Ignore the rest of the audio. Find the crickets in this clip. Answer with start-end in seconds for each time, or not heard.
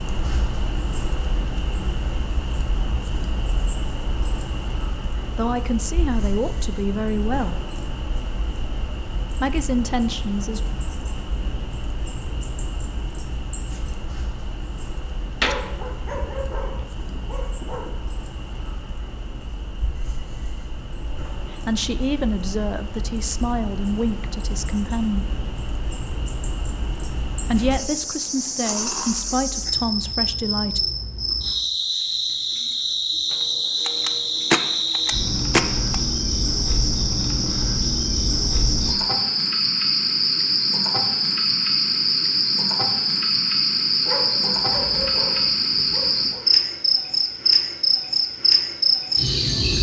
0.0-49.7.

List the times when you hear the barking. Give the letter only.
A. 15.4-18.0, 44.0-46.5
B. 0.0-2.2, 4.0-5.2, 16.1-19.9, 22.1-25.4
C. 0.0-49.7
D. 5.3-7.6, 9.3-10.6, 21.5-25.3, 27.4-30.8
A.